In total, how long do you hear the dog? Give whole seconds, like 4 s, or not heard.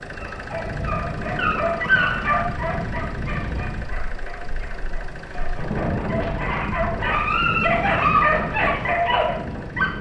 10 s.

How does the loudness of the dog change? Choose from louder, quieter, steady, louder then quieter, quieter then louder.
quieter then louder.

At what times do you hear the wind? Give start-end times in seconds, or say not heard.
0.0-9.9.